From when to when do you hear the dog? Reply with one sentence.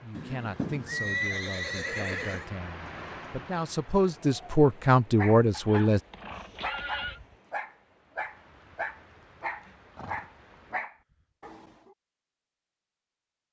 You can hear the dog from 5.2 to 11.9 s.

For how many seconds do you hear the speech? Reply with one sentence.
The speech can be heard for 6 seconds in total.